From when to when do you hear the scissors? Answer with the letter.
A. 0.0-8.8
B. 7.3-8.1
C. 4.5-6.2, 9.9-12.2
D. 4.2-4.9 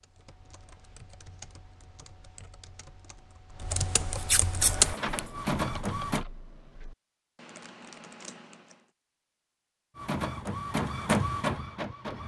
D.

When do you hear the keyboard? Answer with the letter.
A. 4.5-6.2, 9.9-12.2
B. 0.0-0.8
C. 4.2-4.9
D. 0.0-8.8
D.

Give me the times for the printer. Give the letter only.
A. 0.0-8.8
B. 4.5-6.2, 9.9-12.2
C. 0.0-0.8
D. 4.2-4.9
B.